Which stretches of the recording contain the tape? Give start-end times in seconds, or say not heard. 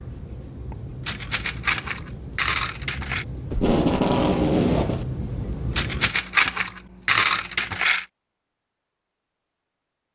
3.5-5.0.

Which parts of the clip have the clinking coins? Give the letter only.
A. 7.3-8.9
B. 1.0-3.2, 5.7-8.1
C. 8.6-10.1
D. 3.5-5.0
B.